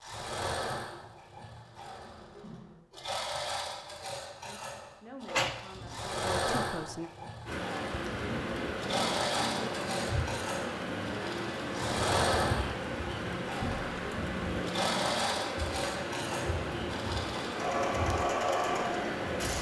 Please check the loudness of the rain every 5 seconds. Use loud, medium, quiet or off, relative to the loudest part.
off, loud, loud, loud.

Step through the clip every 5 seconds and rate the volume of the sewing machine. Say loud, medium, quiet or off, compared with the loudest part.
medium, loud, loud, loud.